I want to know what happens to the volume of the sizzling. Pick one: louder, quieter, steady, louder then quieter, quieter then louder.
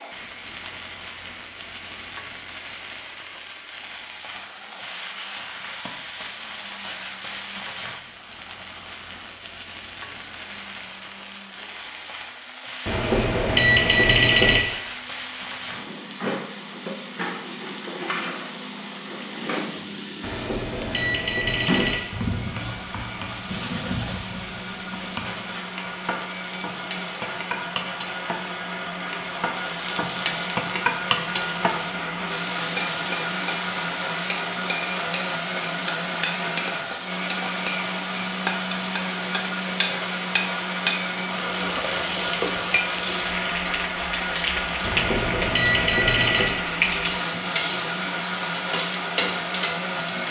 louder.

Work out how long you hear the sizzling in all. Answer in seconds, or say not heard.
50 s.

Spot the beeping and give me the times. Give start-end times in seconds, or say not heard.
12.8-14.6, 20.2-22.0, 44.8-46.5.